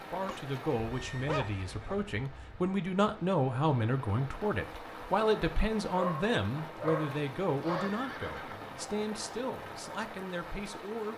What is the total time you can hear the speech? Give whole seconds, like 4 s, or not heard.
11 s.